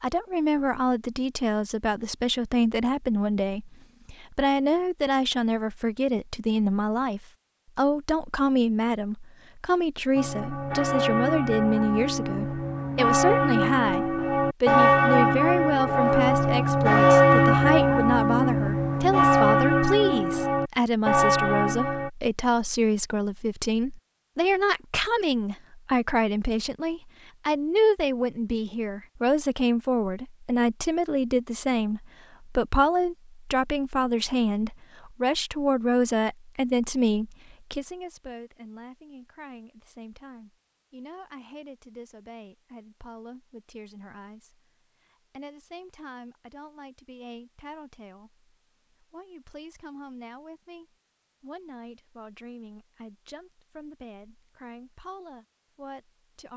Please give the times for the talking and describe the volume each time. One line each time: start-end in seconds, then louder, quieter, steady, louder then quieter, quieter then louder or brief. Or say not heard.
0.0-56.5 quieter.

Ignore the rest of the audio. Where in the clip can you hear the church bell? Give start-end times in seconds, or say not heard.
10.2-22.1.